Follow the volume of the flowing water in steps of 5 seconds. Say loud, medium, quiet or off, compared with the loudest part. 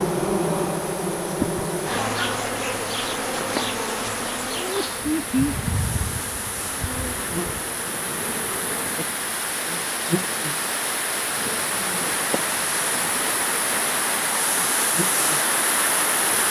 quiet, medium, loud, loud.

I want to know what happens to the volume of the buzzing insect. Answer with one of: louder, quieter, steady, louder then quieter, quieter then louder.
quieter.